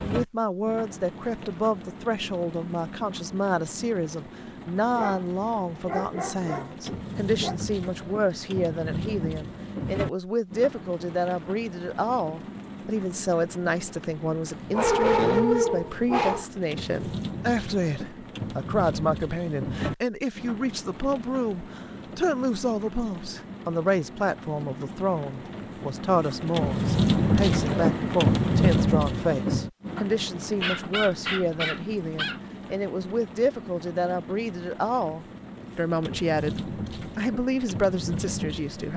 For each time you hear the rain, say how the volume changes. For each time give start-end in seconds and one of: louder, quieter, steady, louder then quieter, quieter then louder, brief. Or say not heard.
0.0-38.9 louder then quieter.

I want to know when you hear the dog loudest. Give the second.
15 s.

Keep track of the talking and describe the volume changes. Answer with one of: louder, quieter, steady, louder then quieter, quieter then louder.
steady.